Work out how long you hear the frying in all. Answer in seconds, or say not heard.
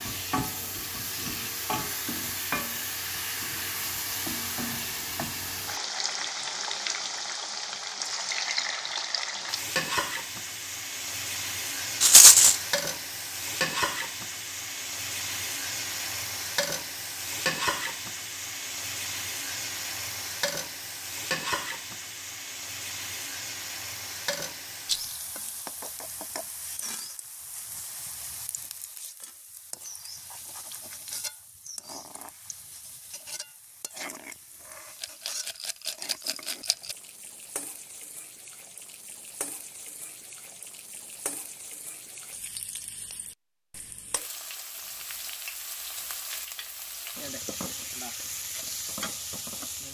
50 s.